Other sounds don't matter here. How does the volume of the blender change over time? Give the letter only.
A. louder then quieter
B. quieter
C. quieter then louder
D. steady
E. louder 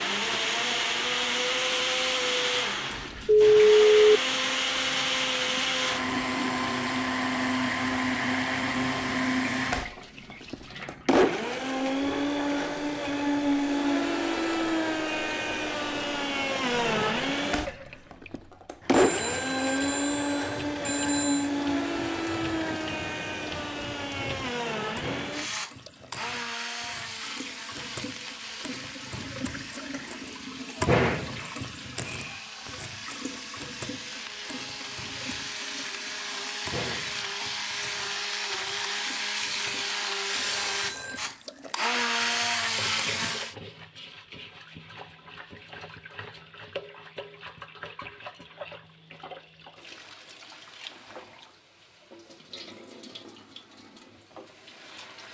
C.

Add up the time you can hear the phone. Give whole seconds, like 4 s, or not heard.
5 s.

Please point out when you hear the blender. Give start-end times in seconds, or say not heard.
0.0-43.5.